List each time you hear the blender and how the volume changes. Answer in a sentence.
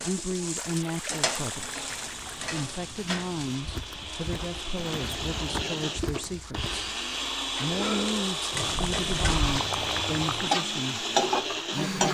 The blender can be heard from 0.0 to 12.0 s, getting louder.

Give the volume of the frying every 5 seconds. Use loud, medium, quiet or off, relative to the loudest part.
medium, medium, loud.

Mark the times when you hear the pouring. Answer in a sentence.
You can hear the pouring from 0.6 to 2.5 s, from 4.8 to 5.9 s and from 8.5 to 10.6 s.